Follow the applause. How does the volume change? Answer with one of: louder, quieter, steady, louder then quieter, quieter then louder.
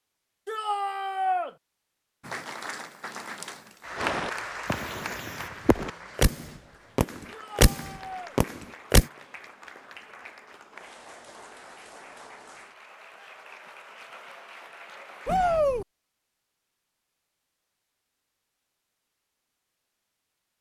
quieter.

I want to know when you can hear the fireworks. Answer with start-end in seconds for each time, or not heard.
4.0-9.1.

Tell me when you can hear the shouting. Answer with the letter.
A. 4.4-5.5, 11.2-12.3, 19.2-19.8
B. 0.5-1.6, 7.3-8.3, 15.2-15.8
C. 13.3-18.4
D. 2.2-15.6
B.